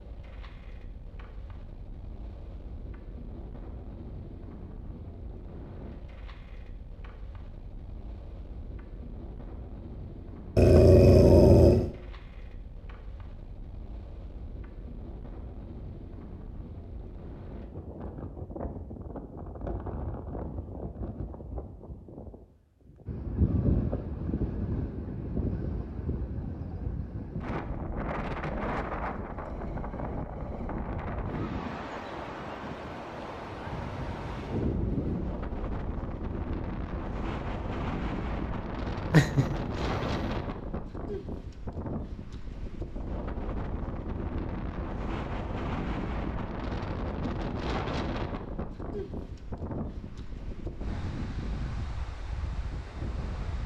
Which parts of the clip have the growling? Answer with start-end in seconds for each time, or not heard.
10.6-11.9, 39.1-40.2.